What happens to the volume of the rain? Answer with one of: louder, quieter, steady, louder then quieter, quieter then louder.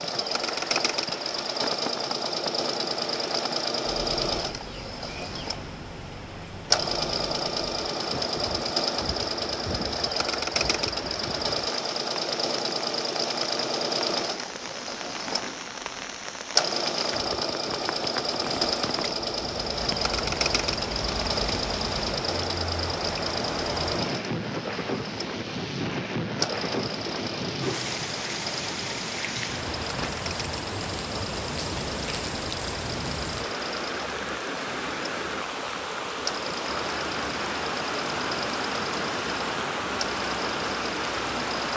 louder.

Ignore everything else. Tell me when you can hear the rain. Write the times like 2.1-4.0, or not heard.
0.0-41.7.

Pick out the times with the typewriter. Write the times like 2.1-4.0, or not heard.
not heard.